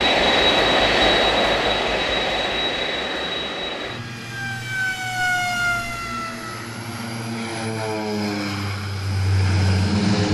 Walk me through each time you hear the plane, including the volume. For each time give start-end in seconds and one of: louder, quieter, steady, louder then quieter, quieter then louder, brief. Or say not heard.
0.0-10.2 quieter then louder.